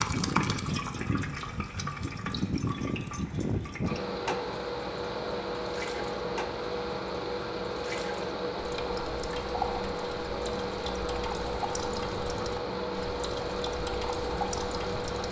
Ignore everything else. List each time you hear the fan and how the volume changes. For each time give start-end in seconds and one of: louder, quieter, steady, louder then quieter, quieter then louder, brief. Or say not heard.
0.0-15.2 steady.